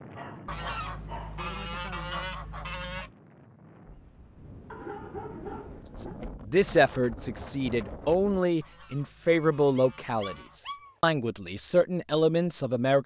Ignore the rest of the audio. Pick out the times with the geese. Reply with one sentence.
The geese can be heard from 0.5 to 3.1 s and from 8.6 to 10.6 s.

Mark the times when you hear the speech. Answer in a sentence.
You can hear the speech from 6.0 to 13.0 s.